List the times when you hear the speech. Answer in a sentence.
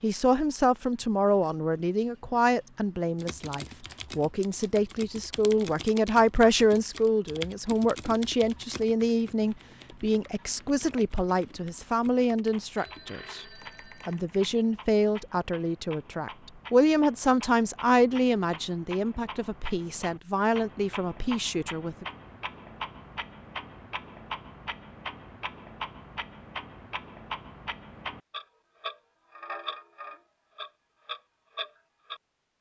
The speech can be heard from 0.0 to 13.4 s and from 14.1 to 22.1 s.